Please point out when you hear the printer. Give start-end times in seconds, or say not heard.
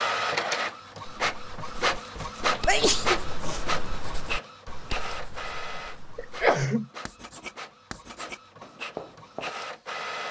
0.0-10.2.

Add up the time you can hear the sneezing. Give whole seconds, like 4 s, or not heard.
2 s.